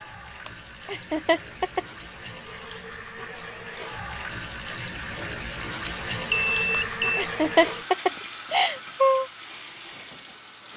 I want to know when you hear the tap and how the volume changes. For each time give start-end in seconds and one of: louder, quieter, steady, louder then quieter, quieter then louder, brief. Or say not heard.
0.0-10.7 louder then quieter.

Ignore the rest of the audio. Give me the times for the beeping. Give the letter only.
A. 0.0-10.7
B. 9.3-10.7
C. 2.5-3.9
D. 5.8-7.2
D.